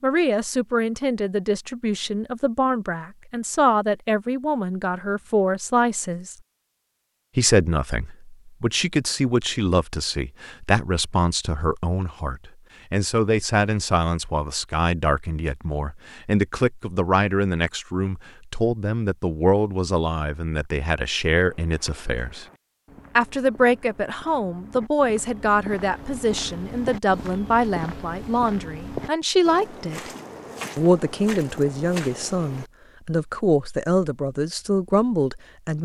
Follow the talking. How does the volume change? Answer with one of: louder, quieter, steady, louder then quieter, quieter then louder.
steady.